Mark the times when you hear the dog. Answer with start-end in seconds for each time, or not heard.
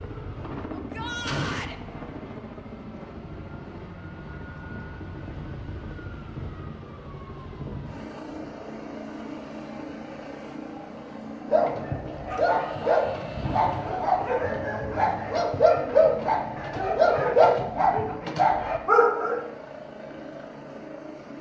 11.4-19.4.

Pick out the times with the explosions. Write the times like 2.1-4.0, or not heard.
1.2-1.8.